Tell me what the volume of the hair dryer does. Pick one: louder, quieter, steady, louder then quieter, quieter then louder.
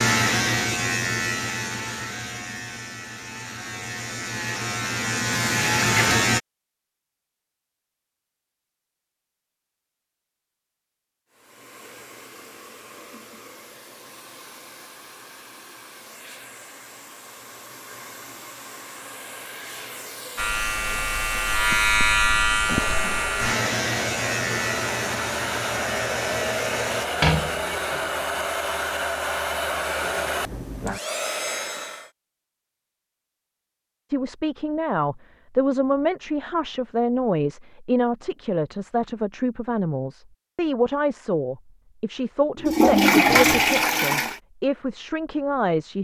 louder.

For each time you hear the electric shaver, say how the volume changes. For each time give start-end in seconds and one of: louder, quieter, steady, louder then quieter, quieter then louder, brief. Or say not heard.
0.0-6.4 quieter then louder
20.4-27.1 quieter.